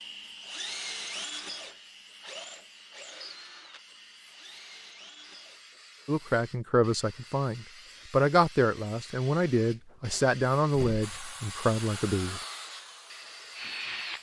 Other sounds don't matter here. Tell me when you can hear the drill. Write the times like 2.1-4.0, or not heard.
0.0-5.8, 11.0-14.1.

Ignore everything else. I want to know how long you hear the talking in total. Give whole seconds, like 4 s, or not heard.
6 s.